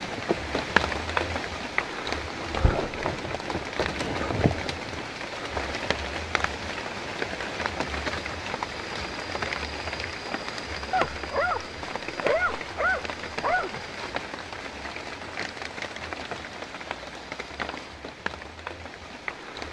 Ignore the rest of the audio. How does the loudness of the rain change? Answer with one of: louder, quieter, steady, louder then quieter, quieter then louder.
quieter.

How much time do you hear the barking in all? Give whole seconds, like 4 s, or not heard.
3 s.